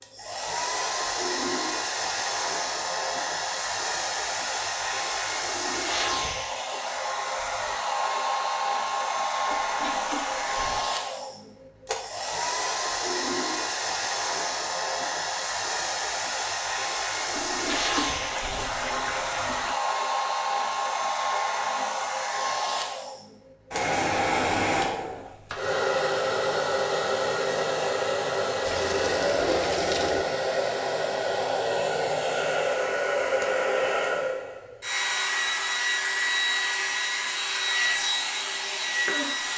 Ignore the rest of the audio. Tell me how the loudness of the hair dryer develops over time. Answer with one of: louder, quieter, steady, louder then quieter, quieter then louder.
steady.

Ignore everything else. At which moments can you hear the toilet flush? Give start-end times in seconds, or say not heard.
9.5-10.8, 17.4-19.8, 28.6-30.2.